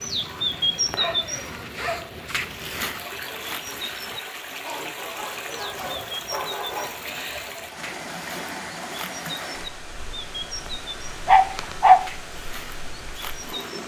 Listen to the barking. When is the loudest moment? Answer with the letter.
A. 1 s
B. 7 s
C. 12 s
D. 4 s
C.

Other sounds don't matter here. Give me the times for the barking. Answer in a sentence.
The barking can be heard from 0.5 to 2.2 s, from 5.0 to 7.0 s and from 11.2 to 12.0 s.